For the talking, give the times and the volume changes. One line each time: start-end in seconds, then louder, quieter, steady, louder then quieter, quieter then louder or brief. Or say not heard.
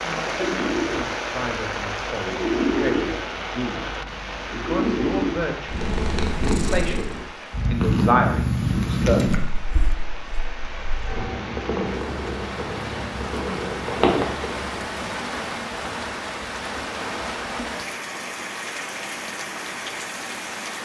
0.0-9.3 louder.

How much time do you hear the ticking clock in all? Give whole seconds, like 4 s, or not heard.
not heard.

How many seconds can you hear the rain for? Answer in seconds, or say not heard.
21 s.